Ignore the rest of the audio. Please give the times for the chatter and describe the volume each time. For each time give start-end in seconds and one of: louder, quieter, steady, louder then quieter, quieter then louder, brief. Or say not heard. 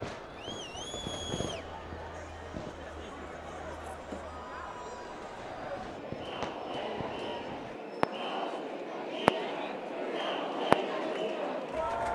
0.0-12.1 louder.